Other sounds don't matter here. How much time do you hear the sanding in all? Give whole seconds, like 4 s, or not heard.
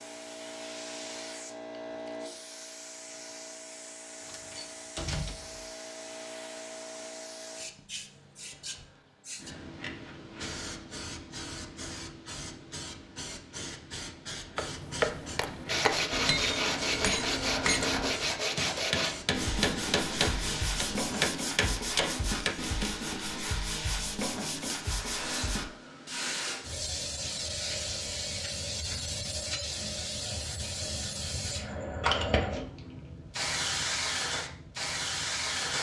10 s.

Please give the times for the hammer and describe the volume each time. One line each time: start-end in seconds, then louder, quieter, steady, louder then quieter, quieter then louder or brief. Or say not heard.
14.6-22.9 steady.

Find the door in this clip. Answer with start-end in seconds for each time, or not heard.
4.2-5.7.